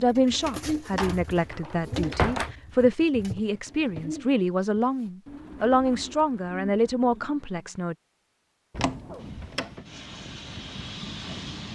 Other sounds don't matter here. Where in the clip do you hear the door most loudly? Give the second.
2 s.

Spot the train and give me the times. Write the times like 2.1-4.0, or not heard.
9.2-11.7.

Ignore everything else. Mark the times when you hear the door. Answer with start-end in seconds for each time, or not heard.
0.9-2.5, 8.7-9.8.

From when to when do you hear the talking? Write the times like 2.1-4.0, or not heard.
0.0-8.0.